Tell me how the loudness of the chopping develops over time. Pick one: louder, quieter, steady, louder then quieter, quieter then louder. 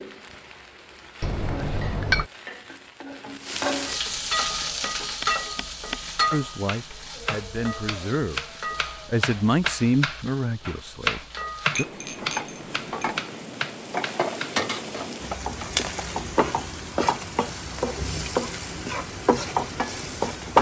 louder then quieter.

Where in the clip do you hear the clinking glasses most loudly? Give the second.
2 s.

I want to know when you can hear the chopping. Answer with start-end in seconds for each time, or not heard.
4.4-15.8.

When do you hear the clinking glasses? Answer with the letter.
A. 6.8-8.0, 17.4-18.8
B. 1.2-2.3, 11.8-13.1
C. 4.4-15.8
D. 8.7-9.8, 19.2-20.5
B.